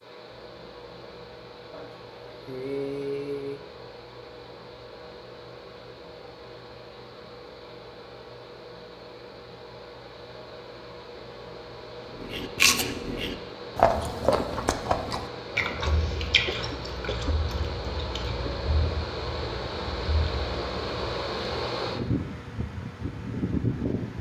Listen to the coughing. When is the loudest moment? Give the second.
3 s.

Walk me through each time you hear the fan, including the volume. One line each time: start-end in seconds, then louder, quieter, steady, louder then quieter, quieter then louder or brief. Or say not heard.
0.0-24.1 louder.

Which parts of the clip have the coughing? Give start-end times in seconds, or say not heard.
1.7-3.6, 16.4-17.4.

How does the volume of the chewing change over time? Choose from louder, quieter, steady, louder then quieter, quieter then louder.
quieter.